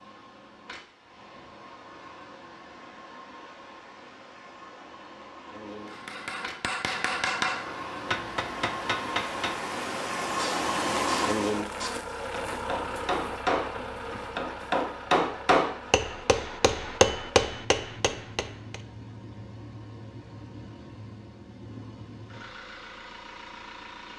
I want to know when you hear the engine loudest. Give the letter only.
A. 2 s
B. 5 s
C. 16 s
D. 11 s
D.